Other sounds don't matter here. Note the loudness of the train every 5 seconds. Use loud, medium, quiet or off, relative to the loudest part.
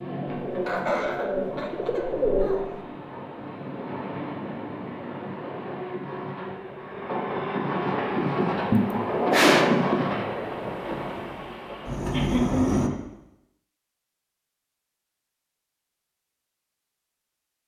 medium, loud, loud, off.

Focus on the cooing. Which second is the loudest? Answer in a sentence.
The volume of the cooing peaks at 2 seconds.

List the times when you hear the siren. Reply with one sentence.
You can't hear the siren here.